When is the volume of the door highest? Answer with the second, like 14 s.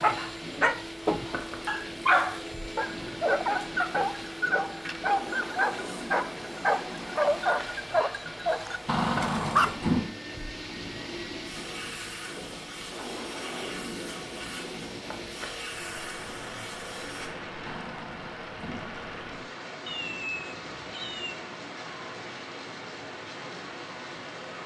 10 s.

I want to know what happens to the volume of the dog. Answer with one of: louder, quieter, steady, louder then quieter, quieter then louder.
quieter.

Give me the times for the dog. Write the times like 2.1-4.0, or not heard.
0.0-9.8.